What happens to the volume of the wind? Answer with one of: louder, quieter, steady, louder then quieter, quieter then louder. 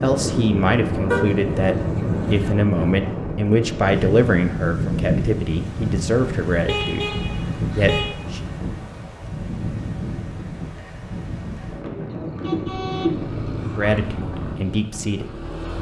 quieter.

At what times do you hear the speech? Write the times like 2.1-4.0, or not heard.
0.0-8.4, 13.8-15.3.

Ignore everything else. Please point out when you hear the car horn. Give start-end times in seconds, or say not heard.
1.1-2.5, 6.7-8.2, 12.1-13.8.